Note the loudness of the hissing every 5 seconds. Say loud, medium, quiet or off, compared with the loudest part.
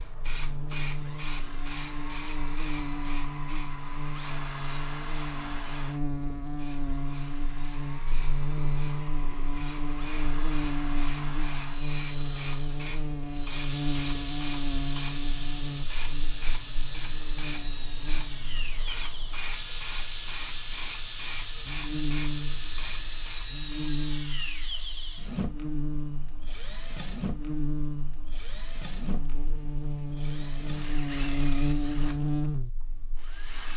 loud, medium, loud, loud, loud, off, off.